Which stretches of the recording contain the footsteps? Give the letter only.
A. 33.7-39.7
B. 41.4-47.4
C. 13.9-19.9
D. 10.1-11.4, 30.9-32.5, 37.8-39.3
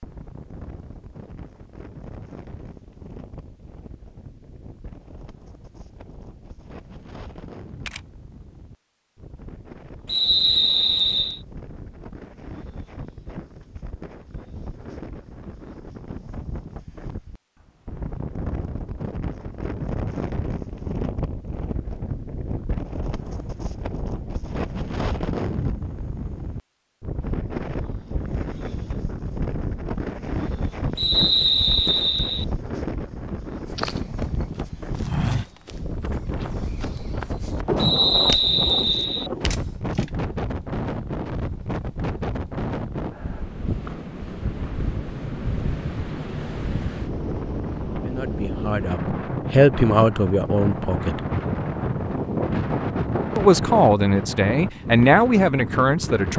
A.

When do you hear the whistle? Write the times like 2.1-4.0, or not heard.
10.1-11.4, 30.9-32.5, 37.8-39.3.